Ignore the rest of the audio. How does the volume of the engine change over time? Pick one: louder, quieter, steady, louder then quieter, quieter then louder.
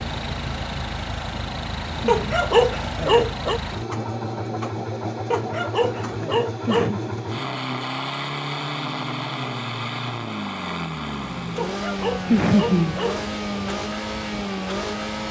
steady.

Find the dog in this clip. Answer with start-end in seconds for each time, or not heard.
2.0-3.6, 5.3-7.0, 11.6-13.2.